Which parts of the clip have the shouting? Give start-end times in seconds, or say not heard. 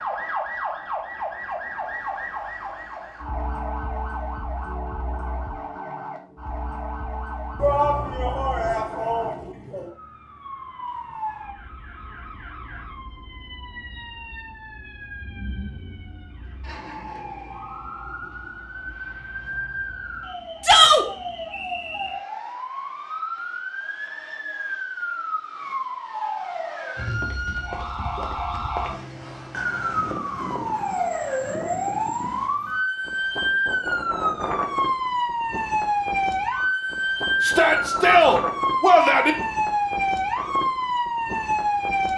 7.6-9.8, 20.6-21.1, 37.4-39.4.